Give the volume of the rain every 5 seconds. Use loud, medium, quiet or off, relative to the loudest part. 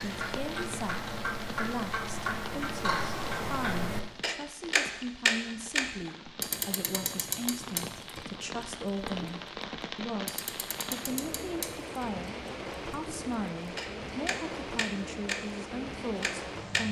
medium, loud, loud, loud.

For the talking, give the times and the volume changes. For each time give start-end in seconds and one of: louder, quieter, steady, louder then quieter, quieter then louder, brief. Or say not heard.
0.0-16.8 steady.